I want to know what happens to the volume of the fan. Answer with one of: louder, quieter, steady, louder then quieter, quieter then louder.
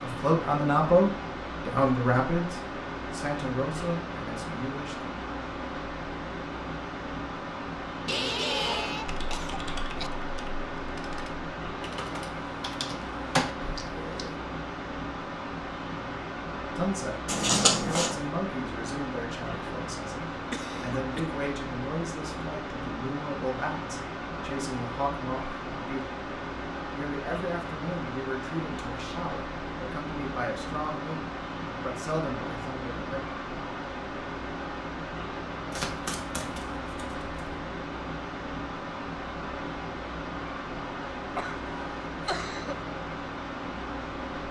steady.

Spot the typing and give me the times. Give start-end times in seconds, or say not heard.
9.1-14.3.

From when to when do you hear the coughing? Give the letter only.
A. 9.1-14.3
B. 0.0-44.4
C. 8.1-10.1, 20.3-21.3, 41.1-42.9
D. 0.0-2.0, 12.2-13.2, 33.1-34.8
C.